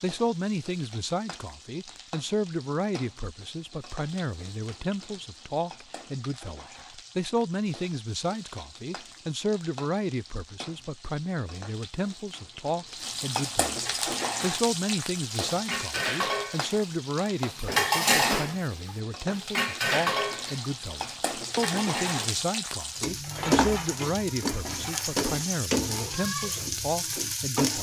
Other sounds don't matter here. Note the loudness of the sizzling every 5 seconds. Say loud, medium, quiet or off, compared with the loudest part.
quiet, quiet, medium, medium, loud, loud.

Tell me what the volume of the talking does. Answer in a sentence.
The volume of the talking stays about the same.